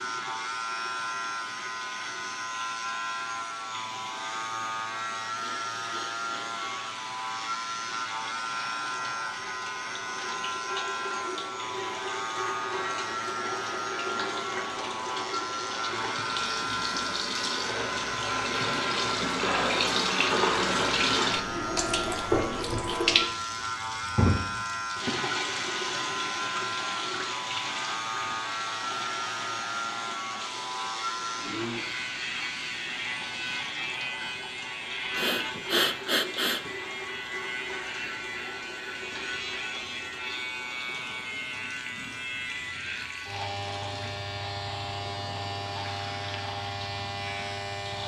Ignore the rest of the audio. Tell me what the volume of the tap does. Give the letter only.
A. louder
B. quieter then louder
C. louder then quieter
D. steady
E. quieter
C.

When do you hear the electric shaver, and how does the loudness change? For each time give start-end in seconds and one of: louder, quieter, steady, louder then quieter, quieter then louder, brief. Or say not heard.
0.0-48.0 steady.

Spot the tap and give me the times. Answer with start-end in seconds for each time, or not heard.
0.0-48.0.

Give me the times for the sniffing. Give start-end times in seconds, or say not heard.
5.3-6.8, 35.1-36.7.